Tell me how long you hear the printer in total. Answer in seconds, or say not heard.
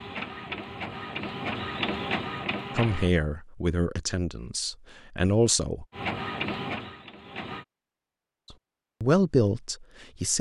5 s.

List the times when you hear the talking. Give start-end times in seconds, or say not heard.
2.8-5.8, 9.0-10.3.